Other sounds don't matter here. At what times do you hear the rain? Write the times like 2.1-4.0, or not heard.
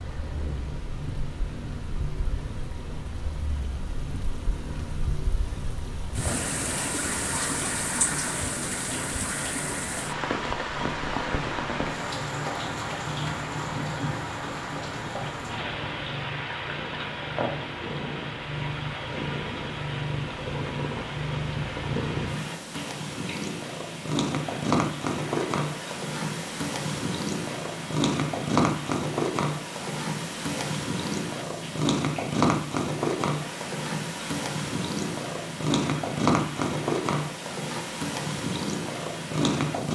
0.0-39.9.